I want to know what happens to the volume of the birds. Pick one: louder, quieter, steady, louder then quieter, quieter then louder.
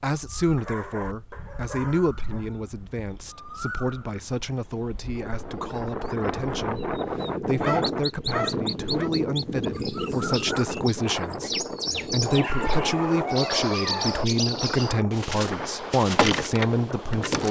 louder.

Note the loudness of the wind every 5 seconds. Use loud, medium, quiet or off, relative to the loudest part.
off, loud, loud, medium.